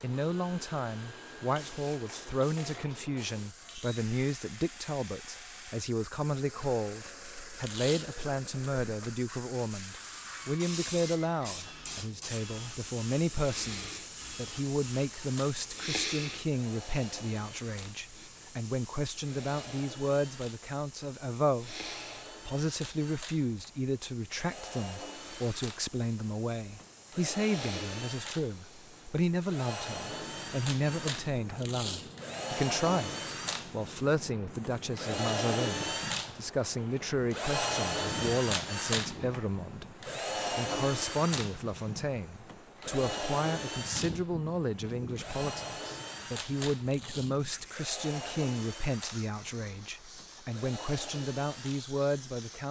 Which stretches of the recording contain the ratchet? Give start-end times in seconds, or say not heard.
not heard.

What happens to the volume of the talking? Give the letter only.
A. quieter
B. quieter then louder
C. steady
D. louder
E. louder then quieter
C.